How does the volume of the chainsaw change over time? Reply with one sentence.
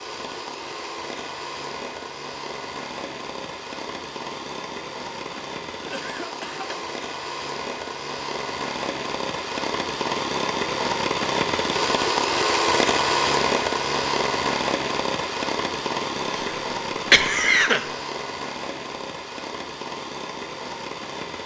The volume of the chainsaw goes up, then down.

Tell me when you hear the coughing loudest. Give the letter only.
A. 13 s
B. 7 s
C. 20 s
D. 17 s
D.